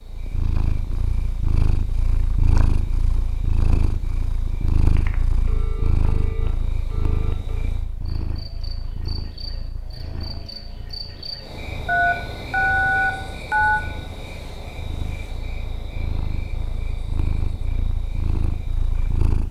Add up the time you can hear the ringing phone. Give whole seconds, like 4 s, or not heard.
5 s.